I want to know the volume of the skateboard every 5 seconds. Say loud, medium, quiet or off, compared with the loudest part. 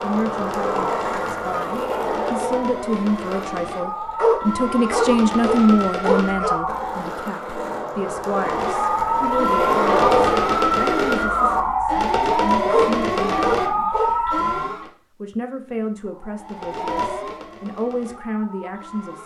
loud, loud, loud, off.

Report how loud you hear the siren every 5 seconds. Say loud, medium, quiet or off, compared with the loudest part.
medium, loud, loud, quiet.